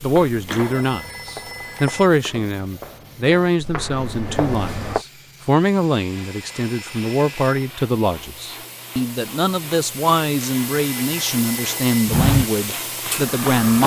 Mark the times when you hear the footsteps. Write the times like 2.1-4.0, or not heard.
0.0-5.0, 12.1-13.8.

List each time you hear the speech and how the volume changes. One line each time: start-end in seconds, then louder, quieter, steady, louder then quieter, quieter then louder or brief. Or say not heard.
0.0-13.8 steady.